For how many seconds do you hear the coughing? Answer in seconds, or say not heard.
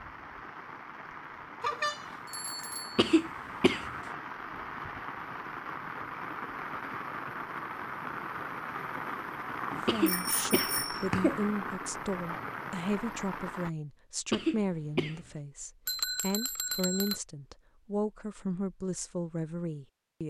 3 s.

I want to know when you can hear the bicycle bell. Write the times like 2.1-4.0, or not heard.
1.6-3.0, 10.1-11.1, 15.8-17.2.